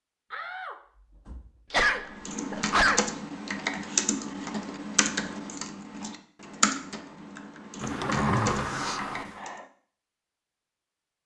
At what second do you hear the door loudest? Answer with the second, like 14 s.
8 s.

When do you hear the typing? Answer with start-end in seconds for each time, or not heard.
2.0-9.6.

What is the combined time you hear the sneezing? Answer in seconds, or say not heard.
3 s.